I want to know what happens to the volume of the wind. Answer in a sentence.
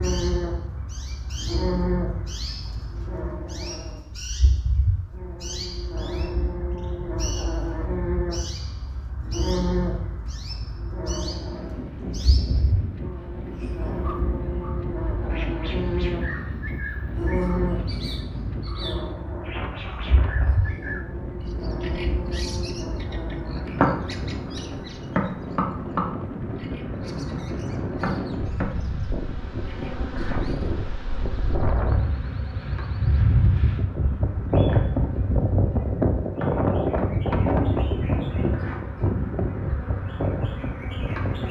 The loudness of the wind goes up.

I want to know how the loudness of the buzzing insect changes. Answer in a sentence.
The loudness of the buzzing insect goes down.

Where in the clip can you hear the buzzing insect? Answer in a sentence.
You can hear the buzzing insect from 0.0 to 41.4 s.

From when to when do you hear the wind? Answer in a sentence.
You can hear the wind from 11.2 to 41.4 s.